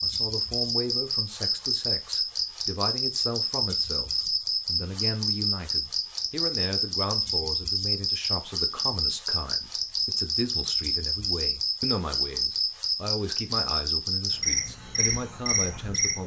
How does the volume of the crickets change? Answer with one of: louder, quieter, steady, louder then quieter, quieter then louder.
steady.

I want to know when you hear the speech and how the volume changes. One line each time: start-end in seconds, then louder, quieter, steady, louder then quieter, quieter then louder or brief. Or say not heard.
0.0-16.2 steady.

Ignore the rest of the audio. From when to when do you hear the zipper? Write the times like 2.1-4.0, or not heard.
not heard.